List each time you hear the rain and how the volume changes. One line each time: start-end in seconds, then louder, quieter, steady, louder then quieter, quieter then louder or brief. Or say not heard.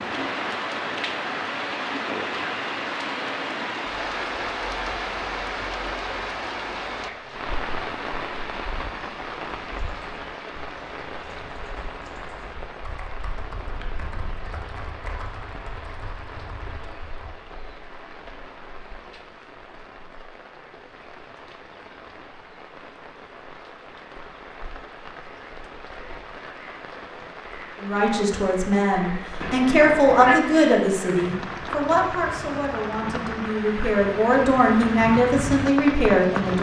0.0-36.5 quieter then louder.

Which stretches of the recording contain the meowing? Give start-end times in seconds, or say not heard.
13.7-14.5, 29.4-30.4.